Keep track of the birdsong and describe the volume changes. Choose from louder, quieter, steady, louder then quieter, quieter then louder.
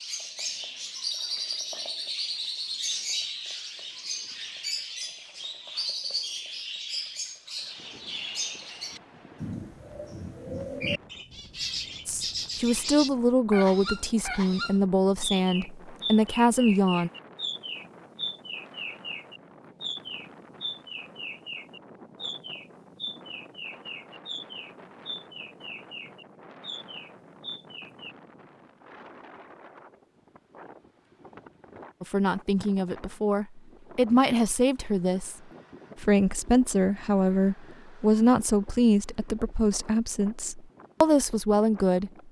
quieter.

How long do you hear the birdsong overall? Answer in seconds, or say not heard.
28 s.